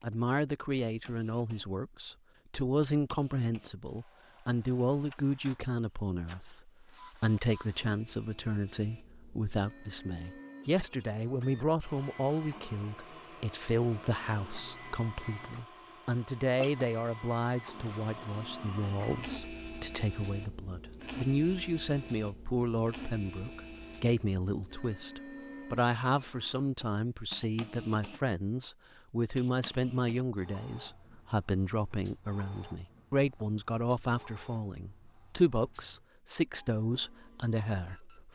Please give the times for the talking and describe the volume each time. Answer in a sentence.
You can hear the talking from 0.0 to 38.2 s, at a steady volume.